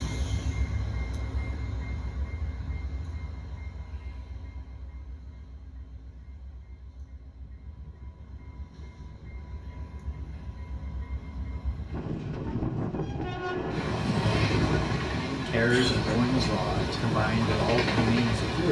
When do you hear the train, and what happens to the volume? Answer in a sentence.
The train can be heard from 0.0 to 18.6 s, getting quieter then louder.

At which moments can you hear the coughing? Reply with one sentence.
The coughing can be heard from 15.7 to 17.0 s.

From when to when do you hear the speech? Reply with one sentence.
The speech can be heard from 15.1 to 18.6 s.